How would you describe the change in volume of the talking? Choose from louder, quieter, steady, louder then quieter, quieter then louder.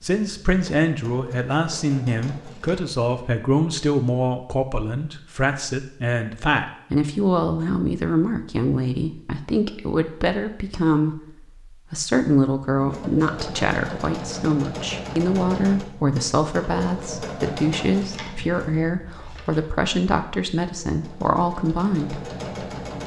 steady.